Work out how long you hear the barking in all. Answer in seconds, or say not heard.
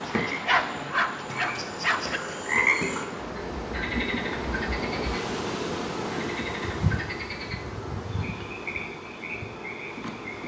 2 s.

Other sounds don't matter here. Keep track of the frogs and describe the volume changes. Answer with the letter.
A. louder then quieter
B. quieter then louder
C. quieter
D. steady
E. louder
A.